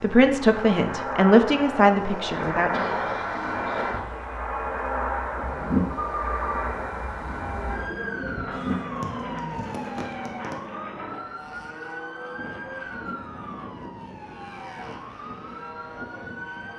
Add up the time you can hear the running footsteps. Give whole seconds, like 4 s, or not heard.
not heard.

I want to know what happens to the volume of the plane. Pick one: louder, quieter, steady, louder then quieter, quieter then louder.
quieter.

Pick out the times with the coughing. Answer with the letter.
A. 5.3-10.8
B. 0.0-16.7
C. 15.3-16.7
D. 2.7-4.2
D.